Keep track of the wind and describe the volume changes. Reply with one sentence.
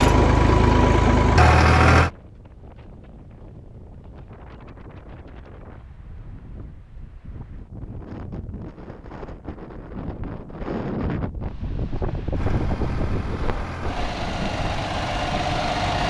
The volume of the wind goes up.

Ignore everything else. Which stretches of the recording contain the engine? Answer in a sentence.
The engine can be heard from 0.0 to 2.1 s and from 12.3 to 16.0 s.